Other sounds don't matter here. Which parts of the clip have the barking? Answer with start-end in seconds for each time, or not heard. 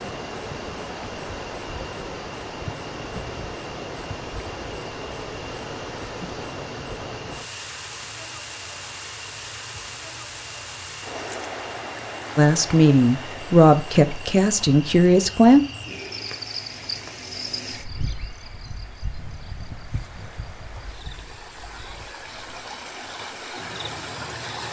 not heard.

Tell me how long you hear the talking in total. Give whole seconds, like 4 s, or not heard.
3 s.